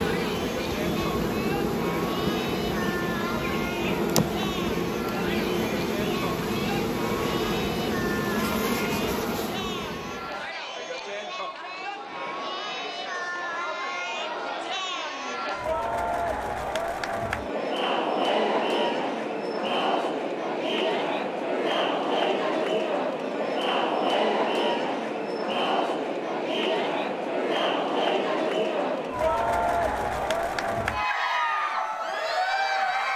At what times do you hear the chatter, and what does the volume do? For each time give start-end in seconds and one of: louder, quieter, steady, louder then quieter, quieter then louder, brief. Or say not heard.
0.0-33.1 louder.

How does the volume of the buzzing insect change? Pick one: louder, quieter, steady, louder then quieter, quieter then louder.
steady.